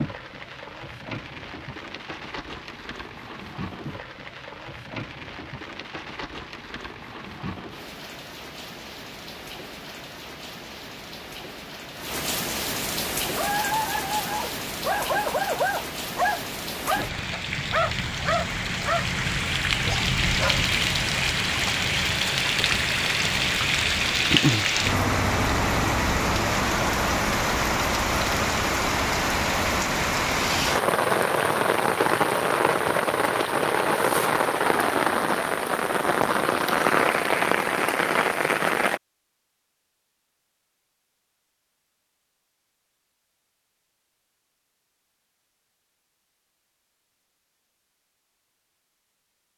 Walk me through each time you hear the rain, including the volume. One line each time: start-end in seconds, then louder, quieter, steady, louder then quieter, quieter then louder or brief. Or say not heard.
0.0-39.0 louder.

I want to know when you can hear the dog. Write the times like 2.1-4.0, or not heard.
13.3-20.7.